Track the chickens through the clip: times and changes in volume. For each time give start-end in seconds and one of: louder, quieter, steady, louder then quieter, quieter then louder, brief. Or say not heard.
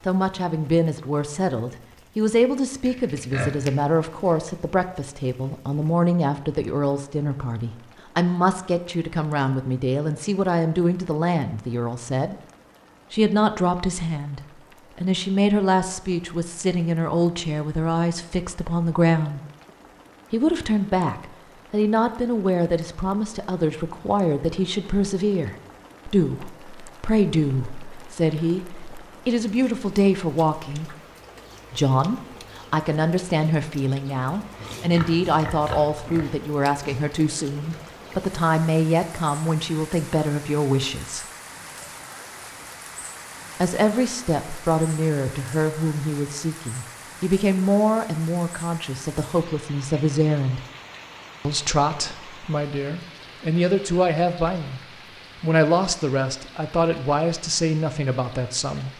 not heard.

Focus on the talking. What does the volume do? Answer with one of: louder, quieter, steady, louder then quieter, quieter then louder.
steady.